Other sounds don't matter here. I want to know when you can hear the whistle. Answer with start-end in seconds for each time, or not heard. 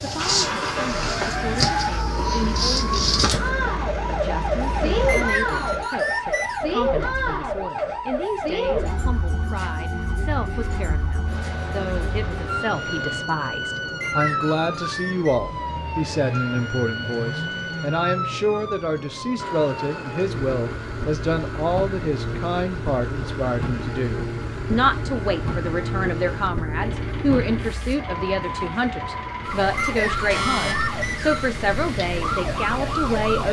5.0-6.7, 14.0-15.4, 29.8-31.6.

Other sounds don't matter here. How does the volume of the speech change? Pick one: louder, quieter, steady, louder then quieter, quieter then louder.
louder.